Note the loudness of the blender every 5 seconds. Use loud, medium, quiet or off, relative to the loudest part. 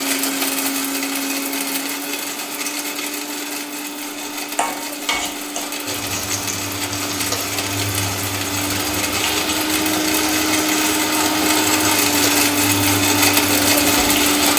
medium, medium, loud.